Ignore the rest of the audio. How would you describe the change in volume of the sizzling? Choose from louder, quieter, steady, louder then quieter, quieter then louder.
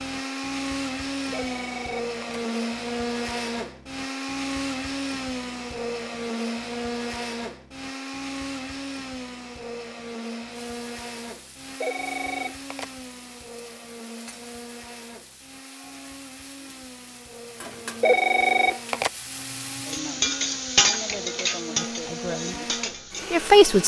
louder.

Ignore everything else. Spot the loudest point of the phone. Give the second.
18 s.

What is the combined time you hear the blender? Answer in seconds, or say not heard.
24 s.